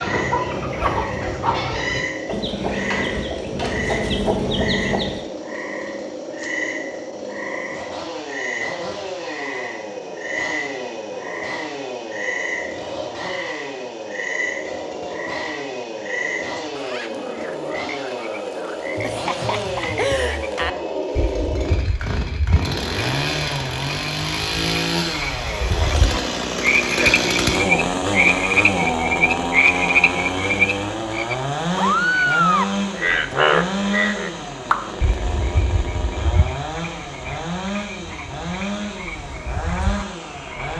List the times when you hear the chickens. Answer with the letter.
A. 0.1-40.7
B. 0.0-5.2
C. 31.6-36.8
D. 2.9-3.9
B.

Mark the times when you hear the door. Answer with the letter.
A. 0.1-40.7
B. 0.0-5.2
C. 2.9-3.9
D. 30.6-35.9
C.